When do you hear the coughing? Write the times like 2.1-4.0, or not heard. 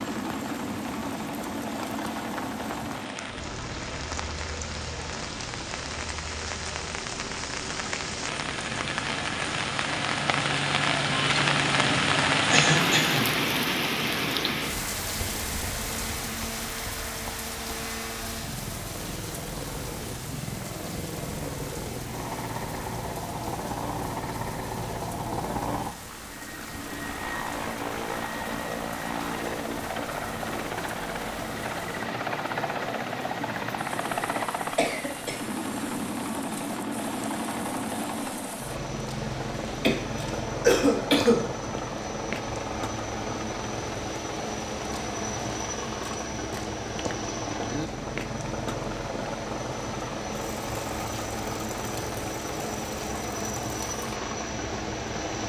12.5-13.2, 34.8-35.4, 39.8-41.4.